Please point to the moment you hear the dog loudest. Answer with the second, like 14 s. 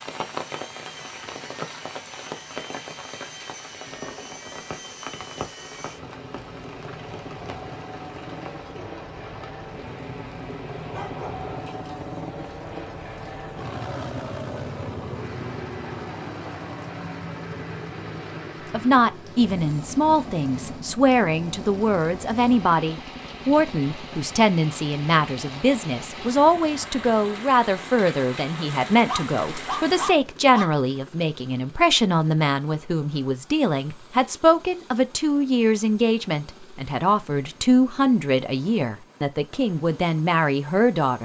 30 s.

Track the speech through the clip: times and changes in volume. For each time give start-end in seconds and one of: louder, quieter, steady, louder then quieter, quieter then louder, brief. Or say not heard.
18.7-41.2 steady.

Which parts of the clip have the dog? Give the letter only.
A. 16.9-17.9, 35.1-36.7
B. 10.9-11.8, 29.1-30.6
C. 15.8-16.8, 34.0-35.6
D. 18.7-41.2
B.